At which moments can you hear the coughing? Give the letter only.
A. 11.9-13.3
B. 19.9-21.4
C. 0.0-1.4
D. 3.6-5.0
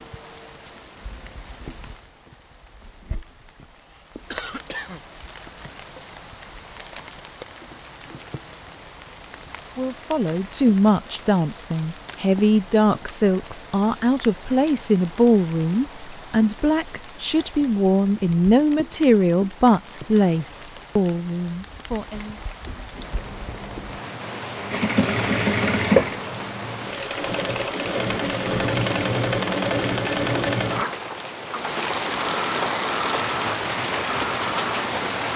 D.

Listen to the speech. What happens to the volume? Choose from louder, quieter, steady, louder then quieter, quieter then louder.
steady.